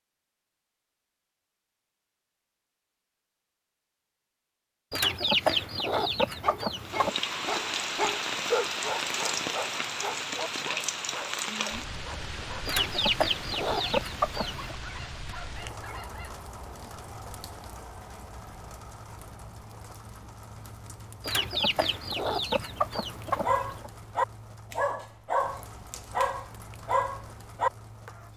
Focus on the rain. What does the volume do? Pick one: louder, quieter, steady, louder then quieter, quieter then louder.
quieter.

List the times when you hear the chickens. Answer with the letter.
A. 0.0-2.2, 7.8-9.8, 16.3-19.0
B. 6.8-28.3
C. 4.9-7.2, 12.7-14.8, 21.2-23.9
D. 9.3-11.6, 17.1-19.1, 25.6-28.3
C.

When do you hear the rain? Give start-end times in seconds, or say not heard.
6.8-28.3.